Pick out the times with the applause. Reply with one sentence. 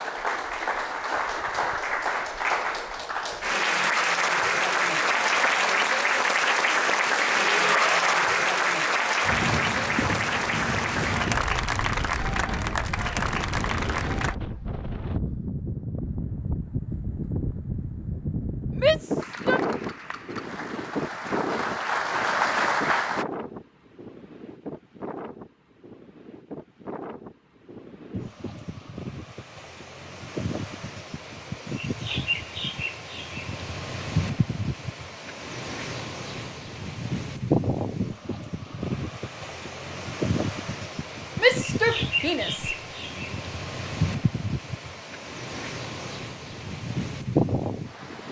You can hear the applause from 0.0 to 14.3 s and from 19.1 to 23.2 s.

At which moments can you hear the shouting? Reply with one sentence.
You can hear the shouting from 7.5 to 8.1 s, from 18.7 to 19.6 s and from 41.4 to 43.2 s.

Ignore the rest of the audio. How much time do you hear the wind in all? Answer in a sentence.
You can hear the wind for 39 seconds altogether.